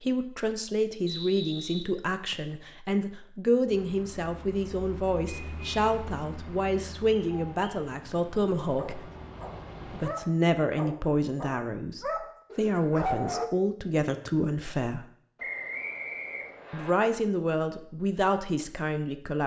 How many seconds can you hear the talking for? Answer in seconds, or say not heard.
17 s.